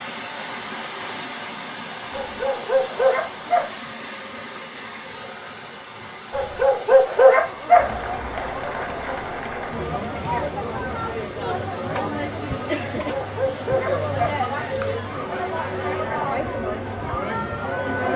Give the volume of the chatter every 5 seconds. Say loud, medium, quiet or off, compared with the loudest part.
off, loud, loud, loud.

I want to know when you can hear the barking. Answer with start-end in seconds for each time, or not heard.
2.1-3.8, 6.3-8.0, 12.9-14.4.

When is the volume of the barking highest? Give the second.
7 s.